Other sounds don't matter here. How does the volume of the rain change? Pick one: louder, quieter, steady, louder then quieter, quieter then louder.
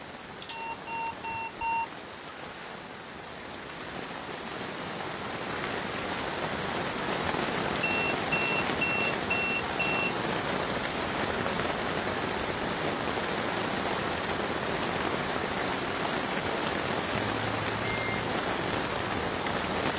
louder.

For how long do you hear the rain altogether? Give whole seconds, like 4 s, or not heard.
20 s.